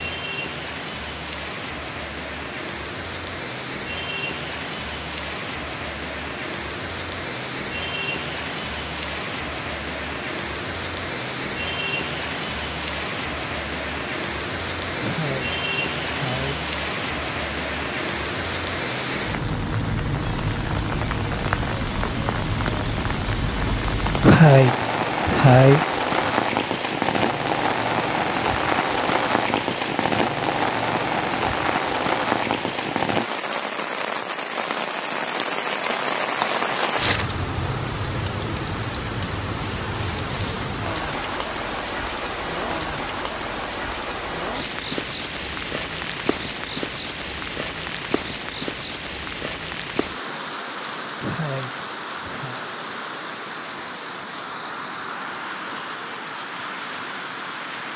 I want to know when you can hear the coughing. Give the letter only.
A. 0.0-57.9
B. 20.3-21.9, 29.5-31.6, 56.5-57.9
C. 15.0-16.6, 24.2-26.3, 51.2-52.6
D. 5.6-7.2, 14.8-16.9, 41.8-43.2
C.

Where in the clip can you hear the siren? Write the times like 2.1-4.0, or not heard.
not heard.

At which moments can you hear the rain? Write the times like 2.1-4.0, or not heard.
0.0-57.9.